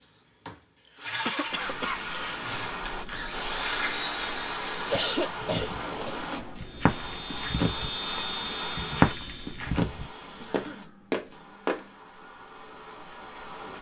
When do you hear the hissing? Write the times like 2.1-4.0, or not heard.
1.4-13.7.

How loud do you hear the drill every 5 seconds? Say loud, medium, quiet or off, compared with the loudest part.
loud, loud, off.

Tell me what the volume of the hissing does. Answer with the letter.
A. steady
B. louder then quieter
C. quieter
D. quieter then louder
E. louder
C.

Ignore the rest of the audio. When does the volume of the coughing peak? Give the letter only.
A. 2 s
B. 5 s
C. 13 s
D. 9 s
B.